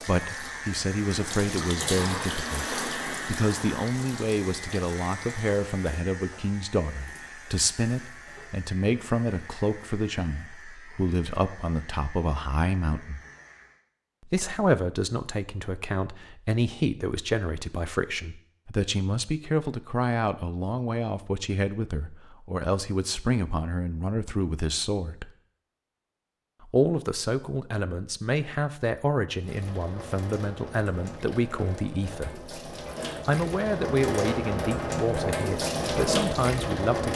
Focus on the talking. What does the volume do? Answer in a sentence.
The volume of the talking stays about the same.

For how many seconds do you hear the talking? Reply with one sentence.
The talking can be heard for 35 seconds in total.